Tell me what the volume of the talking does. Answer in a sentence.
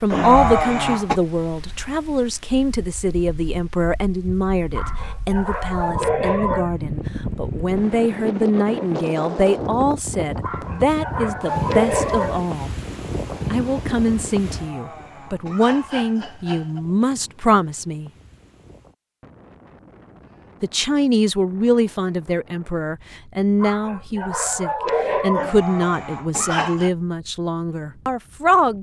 The volume of the talking stays about the same.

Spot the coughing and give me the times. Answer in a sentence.
The coughing can be heard from 0.1 to 1.2 s, from 14.4 to 16.8 s and from 25.4 to 26.9 s.